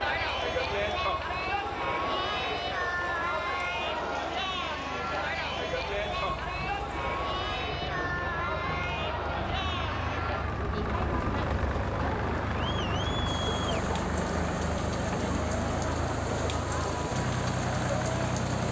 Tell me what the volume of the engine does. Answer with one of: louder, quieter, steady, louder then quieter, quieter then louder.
louder.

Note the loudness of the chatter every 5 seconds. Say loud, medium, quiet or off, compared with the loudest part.
loud, loud, medium, medium.